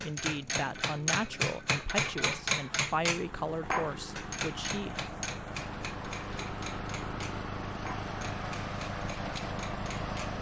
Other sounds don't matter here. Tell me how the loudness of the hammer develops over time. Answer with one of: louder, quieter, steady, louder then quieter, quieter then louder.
quieter.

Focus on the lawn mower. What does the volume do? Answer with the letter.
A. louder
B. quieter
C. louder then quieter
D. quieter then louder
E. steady
A.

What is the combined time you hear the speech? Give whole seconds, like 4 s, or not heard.
5 s.